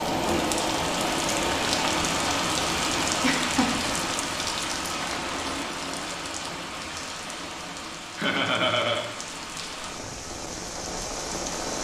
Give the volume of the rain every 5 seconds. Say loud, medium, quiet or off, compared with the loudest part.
loud, medium, medium.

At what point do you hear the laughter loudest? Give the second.
9 s.